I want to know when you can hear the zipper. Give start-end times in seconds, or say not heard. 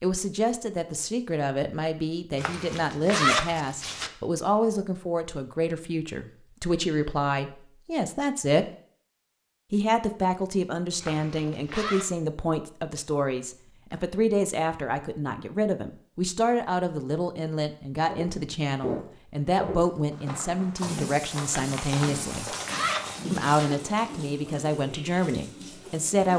2.4-4.1, 11.0-12.1, 21.9-23.6.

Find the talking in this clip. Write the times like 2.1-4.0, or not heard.
0.0-8.7, 9.7-22.6, 23.3-26.3.